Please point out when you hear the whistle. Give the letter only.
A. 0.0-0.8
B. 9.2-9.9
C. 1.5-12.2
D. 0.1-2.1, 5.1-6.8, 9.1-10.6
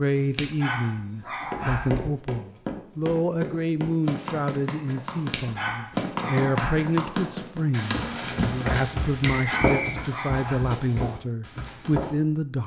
B.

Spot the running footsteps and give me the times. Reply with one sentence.
The running footsteps can be heard from 1.5 to 12.2 s.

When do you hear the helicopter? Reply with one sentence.
The helicopter can't be heard in this clip.